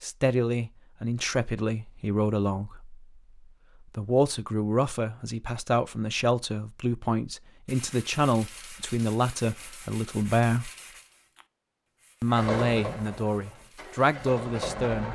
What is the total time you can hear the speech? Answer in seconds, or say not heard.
13 s.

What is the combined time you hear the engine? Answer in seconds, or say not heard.
3 s.